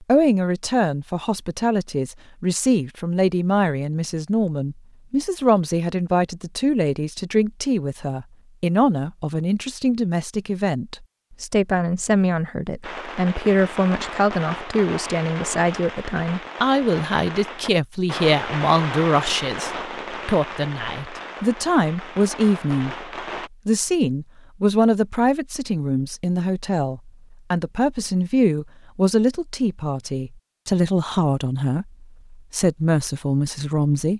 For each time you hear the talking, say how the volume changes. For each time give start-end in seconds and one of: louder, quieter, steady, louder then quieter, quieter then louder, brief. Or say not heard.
0.0-23.1 steady
23.6-34.1 steady.